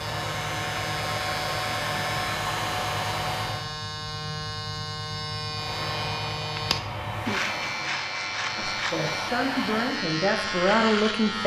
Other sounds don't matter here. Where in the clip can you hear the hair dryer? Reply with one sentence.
The hair dryer can be heard from 0.0 to 3.7 s and from 5.5 to 10.1 s.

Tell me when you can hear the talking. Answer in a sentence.
The talking can be heard from 8.6 to 11.4 s.